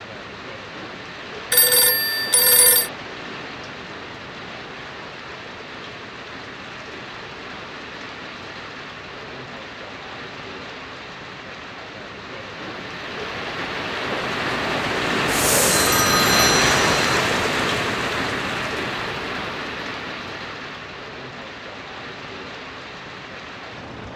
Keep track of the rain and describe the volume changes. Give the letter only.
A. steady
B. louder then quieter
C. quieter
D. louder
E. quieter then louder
B.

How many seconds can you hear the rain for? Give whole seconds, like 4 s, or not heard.
24 s.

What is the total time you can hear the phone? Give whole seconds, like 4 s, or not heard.
3 s.